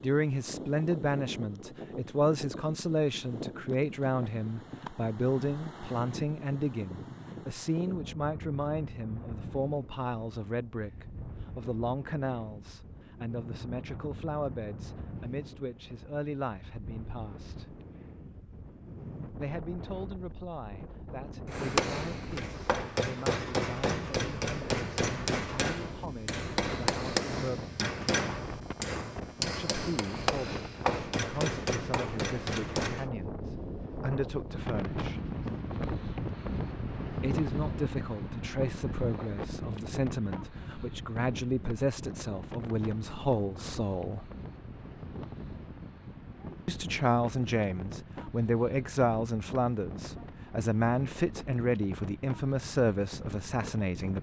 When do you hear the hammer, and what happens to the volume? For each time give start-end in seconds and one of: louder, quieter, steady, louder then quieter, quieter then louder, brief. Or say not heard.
21.4-33.1 steady.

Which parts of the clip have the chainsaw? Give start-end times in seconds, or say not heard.
not heard.